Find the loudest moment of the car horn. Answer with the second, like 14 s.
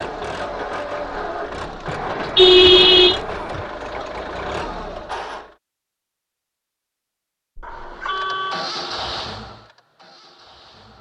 3 s.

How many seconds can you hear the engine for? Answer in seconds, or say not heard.
9 s.